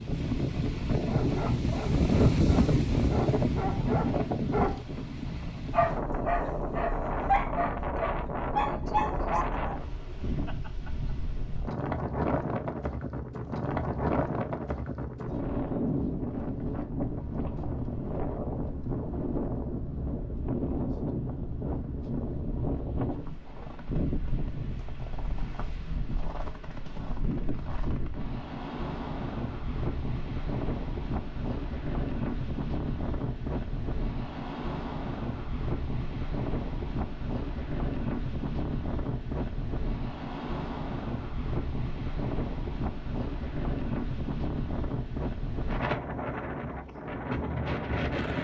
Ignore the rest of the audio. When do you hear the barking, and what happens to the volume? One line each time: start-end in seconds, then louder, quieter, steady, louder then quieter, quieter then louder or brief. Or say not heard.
1.1-9.7 louder.